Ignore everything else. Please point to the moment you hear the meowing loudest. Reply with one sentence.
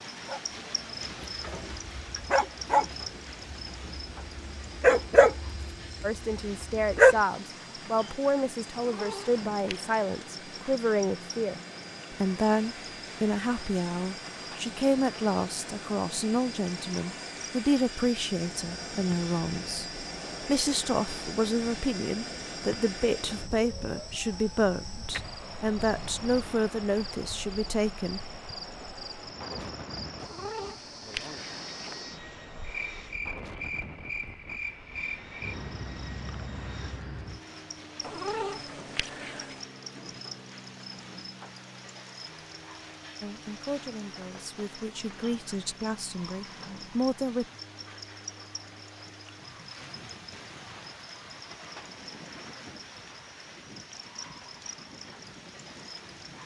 The loudest moment of the meowing is at 38 seconds.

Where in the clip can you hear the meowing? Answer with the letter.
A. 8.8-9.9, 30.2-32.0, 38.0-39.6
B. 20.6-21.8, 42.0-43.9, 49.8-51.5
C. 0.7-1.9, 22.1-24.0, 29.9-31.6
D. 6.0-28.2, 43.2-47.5
A.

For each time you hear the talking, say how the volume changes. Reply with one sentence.
You can hear the talking from 6.0 to 28.2 s, at a steady volume; and from 43.2 to 47.5 s, getting louder.